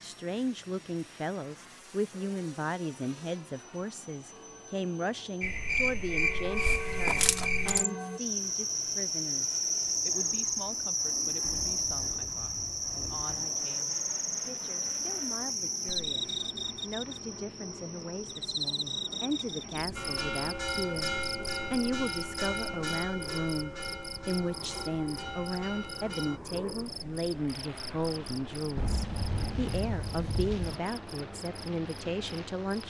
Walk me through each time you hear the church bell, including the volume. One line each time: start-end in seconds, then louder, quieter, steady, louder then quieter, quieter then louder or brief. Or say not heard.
1.8-8.2 louder
19.9-26.4 quieter.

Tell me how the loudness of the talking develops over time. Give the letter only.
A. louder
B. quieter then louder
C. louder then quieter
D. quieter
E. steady
B.